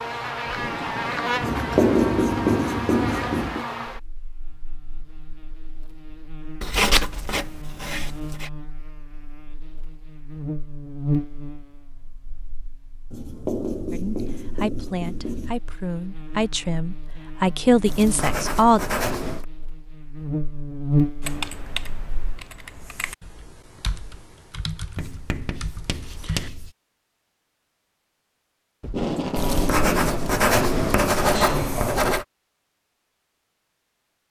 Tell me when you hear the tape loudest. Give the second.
29 s.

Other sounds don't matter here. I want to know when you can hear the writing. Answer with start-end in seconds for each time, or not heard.
1.4-3.6, 6.6-8.5, 13.1-15.6, 17.9-19.4, 24.9-26.7, 29.4-32.2.